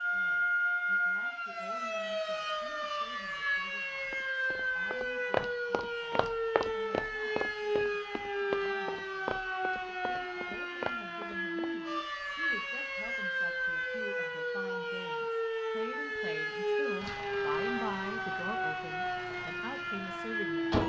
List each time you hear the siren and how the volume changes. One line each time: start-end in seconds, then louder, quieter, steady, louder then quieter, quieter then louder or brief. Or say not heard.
0.0-20.8 steady.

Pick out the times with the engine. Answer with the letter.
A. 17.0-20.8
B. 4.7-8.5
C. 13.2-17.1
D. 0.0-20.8
A.